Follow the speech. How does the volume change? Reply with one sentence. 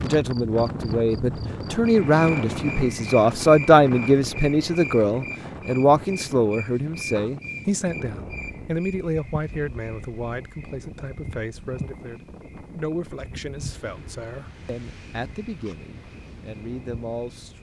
The loudness of the speech goes down.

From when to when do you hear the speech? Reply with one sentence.
The speech can be heard from 0.0 to 17.5 s.